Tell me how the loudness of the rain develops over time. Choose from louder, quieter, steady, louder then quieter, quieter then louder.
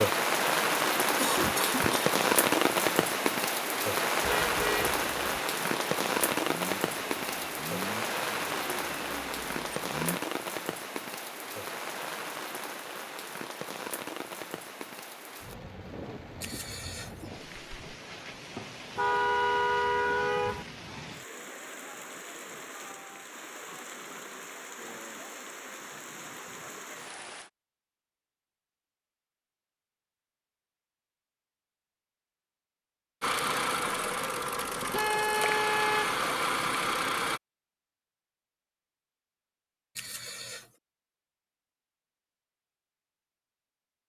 quieter.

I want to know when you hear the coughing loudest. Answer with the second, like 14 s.
1 s.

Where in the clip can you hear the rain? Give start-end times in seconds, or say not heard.
0.0-27.5.